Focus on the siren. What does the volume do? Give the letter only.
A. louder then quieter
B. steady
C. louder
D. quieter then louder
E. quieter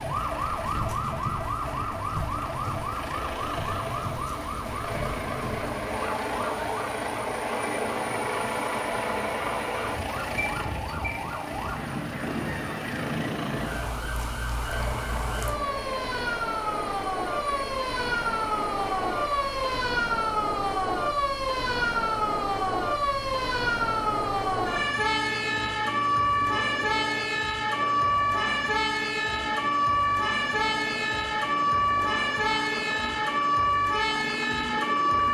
C.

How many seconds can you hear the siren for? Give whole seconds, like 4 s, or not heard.
35 s.